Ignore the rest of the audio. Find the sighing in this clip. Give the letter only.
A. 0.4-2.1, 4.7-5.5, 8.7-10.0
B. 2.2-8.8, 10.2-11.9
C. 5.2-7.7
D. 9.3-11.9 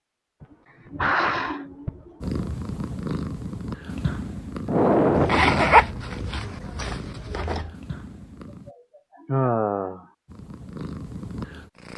A.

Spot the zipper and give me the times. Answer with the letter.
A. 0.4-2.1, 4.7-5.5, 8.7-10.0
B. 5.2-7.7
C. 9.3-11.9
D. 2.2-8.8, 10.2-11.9
B.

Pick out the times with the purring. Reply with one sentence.
The purring can be heard from 2.2 to 8.8 s and from 10.2 to 11.9 s.